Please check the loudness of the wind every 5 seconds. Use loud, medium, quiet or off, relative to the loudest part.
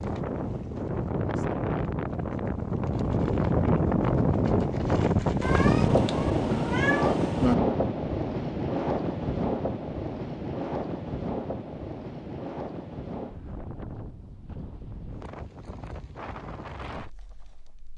loud, loud, medium, quiet.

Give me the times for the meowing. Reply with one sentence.
The meowing can be heard from 5.4 to 7.5 s.